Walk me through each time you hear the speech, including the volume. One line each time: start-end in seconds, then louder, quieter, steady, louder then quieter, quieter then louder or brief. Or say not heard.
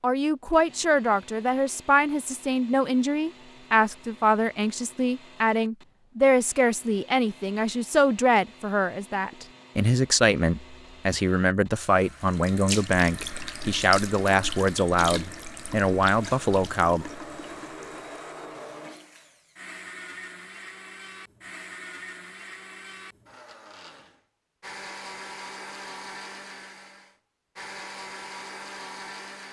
0.0-17.1 steady.